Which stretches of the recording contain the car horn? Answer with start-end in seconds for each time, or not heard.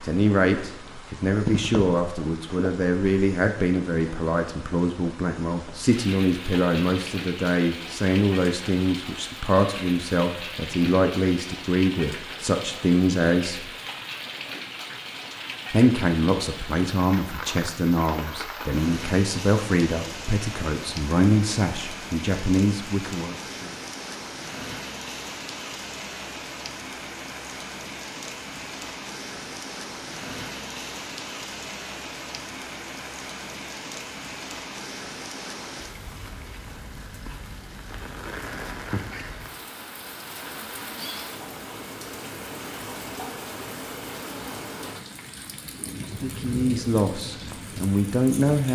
not heard.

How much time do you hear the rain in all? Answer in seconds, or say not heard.
49 s.